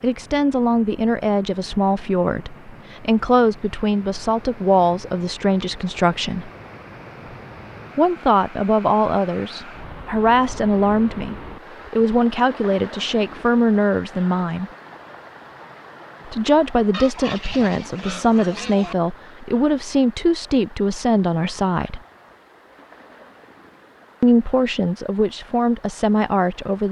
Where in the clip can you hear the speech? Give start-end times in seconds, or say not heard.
0.0-6.5, 8.0-14.7, 16.2-22.0, 24.2-26.8.